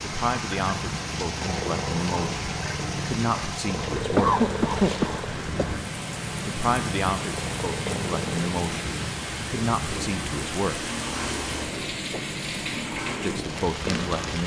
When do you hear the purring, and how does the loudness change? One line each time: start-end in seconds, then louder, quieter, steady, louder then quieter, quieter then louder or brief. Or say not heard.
0.0-14.4 steady.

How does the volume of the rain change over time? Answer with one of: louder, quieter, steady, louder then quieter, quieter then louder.
steady.